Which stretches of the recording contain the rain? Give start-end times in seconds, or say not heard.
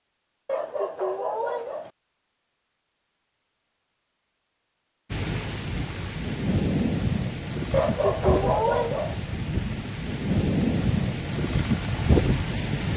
5.1-12.9.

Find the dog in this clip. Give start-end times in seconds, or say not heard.
0.5-1.9, 7.7-9.2.